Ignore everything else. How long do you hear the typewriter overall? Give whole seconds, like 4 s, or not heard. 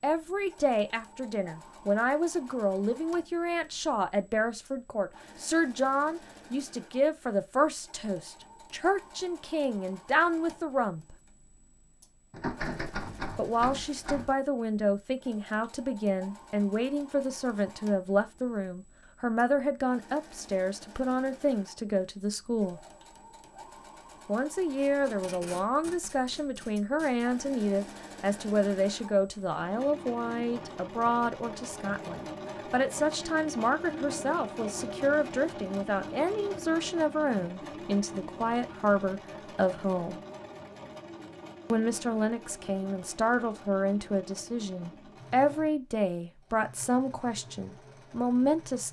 2 s.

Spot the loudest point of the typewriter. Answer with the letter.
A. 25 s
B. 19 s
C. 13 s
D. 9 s
C.